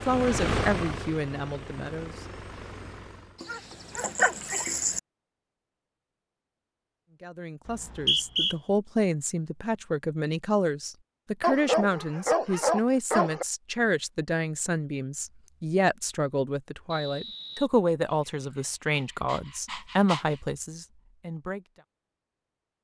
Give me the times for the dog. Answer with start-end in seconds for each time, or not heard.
3.4-5.0, 11.4-13.4, 18.6-20.4.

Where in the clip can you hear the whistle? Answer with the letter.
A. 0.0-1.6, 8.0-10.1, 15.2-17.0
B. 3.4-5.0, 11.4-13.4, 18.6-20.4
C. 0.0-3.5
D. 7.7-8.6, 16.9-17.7
D.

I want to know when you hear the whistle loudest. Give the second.
8 s.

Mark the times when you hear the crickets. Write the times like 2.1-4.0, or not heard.
not heard.